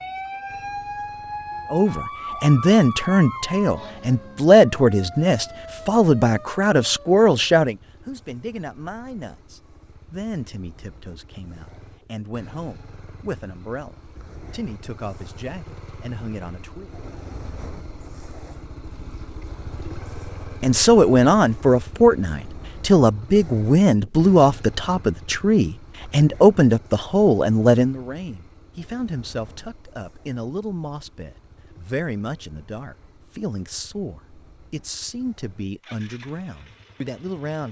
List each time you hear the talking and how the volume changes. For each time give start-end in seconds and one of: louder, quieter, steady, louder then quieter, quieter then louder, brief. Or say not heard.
1.7-16.9 quieter
20.6-37.6 quieter.